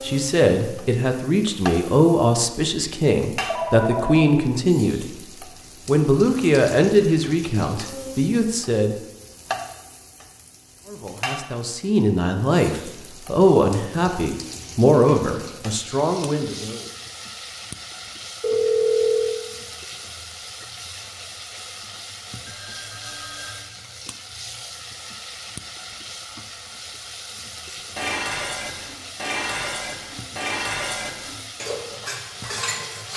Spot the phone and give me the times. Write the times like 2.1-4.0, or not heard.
3.5-4.3, 18.4-19.4, 22.4-23.7.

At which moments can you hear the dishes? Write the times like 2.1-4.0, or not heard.
27.9-33.1.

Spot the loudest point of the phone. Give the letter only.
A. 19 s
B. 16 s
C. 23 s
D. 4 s
A.